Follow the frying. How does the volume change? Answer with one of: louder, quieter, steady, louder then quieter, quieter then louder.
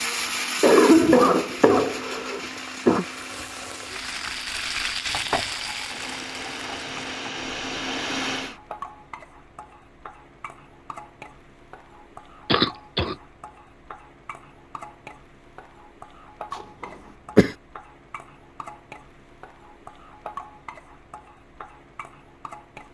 quieter.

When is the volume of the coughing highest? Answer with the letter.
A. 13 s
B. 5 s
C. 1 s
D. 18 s
C.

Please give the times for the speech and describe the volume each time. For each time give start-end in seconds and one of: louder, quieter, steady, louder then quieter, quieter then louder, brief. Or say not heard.
not heard.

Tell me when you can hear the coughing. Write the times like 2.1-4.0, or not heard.
0.6-3.0, 12.4-13.2, 16.6-17.6.